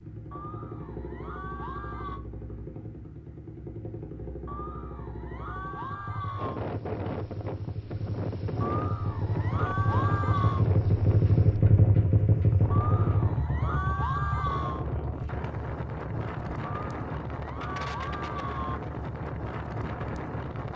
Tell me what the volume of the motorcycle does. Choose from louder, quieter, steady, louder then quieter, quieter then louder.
louder then quieter.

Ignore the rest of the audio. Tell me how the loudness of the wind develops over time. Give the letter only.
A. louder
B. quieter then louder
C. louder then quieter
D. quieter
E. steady
E.